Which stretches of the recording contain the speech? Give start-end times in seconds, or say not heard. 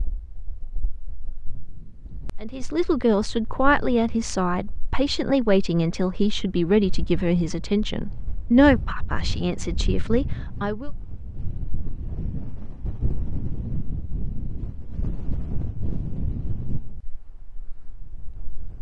2.4-10.9.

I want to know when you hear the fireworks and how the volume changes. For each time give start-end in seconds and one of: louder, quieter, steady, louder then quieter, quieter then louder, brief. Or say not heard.
not heard.